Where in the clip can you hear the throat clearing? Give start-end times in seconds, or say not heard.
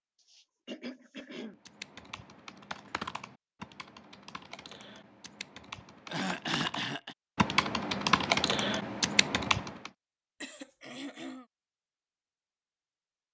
0.3-1.6, 6.0-7.2, 10.4-11.4.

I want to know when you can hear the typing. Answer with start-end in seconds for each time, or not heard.
1.6-9.9.